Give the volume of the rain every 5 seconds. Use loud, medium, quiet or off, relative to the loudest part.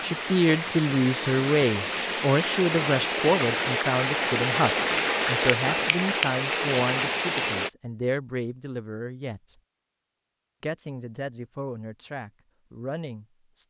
loud, loud, off.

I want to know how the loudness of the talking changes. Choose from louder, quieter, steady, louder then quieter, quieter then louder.
quieter.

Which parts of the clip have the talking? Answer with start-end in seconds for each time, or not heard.
0.0-9.6, 10.6-13.6.